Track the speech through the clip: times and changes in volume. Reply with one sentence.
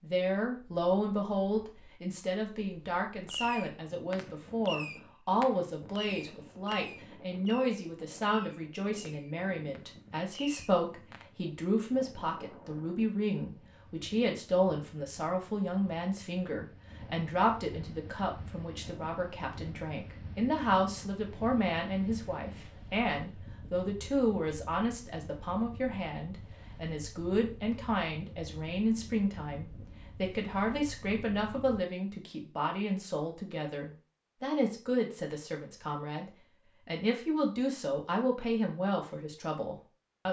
The speech can be heard from 0.0 to 40.2 s, at a steady volume.